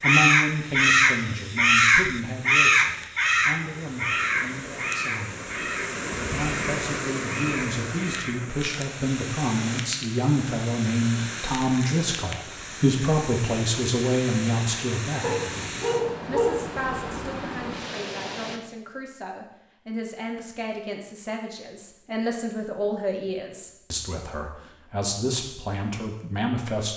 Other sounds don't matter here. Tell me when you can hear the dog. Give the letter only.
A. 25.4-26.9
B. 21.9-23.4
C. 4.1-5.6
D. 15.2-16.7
D.